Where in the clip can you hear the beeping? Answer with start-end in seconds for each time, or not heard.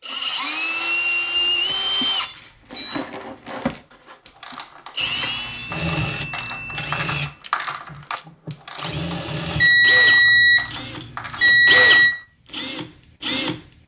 2.0-3.0, 5.0-7.1, 9.6-12.2.